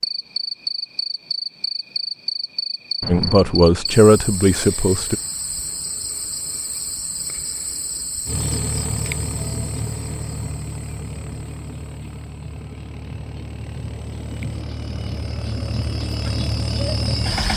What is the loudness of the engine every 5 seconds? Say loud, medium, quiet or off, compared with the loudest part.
off, loud, medium, loud.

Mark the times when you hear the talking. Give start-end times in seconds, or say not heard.
3.0-5.2.